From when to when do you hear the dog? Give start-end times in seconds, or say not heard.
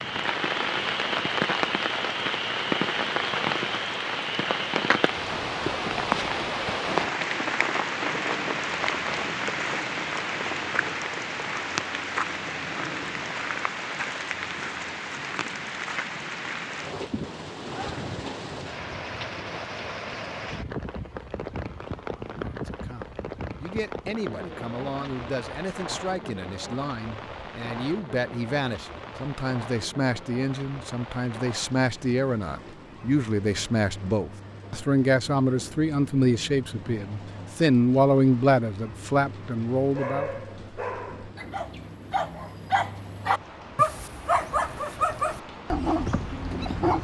40.0-46.9.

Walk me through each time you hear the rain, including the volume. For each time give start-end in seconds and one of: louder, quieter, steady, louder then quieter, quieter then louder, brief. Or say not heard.
0.0-46.9 quieter.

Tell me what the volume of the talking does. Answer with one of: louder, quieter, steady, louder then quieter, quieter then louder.
louder.